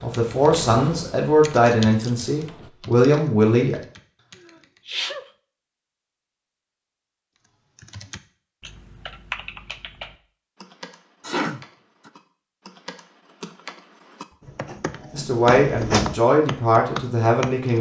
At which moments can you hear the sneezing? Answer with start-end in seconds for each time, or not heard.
4.5-5.2, 11.2-12.1.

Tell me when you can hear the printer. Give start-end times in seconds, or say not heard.
0.0-2.7, 14.4-16.1.